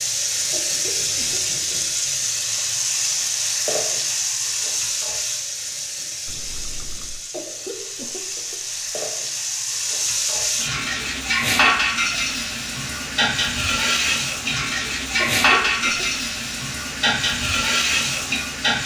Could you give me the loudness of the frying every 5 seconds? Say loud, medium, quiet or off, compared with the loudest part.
loud, medium, loud, loud.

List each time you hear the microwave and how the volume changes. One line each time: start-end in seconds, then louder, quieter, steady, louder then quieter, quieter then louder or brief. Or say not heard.
not heard.